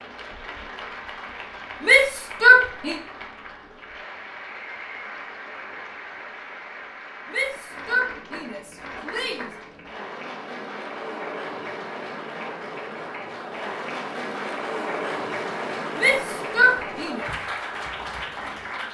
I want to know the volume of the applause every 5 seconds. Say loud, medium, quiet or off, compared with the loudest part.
medium, medium, loud, loud.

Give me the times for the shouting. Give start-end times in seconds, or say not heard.
1.8-3.0, 7.3-9.5, 15.9-17.2.